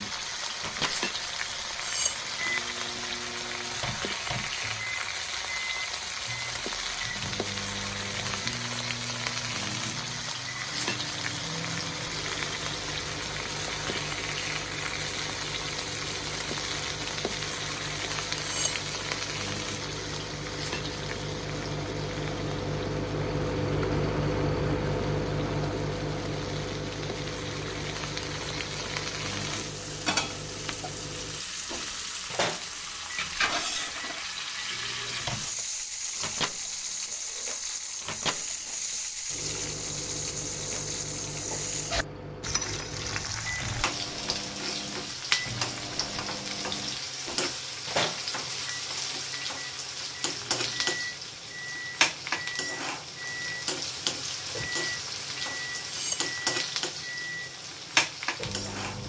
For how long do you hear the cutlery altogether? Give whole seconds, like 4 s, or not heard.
2 s.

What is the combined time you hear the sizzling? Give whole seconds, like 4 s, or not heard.
59 s.